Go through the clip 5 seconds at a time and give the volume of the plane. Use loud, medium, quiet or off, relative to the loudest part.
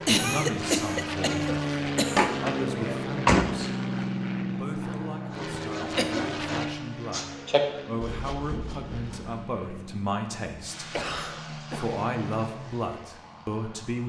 loud, medium, medium.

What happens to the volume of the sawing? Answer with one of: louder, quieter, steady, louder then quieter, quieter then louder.
louder then quieter.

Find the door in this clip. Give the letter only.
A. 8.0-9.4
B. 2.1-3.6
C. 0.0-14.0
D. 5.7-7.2
B.